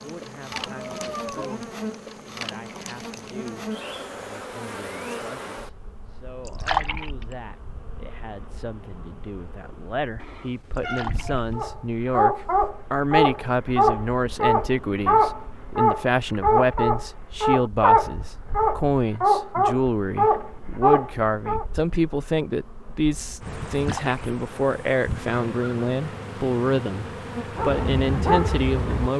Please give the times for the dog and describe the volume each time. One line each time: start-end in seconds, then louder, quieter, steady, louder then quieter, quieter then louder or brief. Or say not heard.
11.6-21.6 steady
27.6-29.1 brief.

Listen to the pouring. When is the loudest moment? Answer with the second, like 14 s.
7 s.